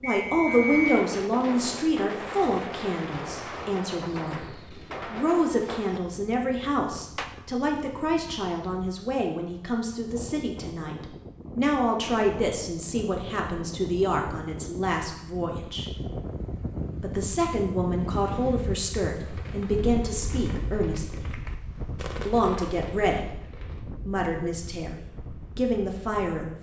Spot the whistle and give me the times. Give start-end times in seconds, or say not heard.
0.0-0.9.